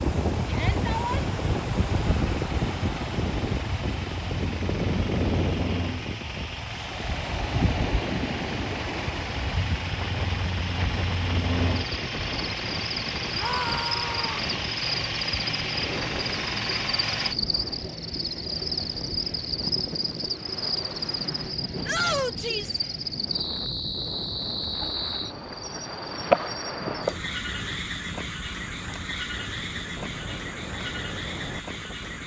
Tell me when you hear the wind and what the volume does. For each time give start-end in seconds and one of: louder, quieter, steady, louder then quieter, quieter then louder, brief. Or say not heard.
0.0-32.2 quieter.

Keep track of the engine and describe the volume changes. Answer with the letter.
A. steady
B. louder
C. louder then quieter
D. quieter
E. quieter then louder
B.